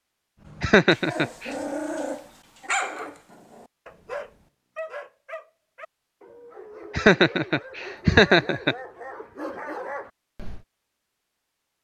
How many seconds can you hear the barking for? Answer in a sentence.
The barking can be heard for 10 seconds in total.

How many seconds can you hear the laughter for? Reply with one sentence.
The laughter can be heard for 3 seconds in total.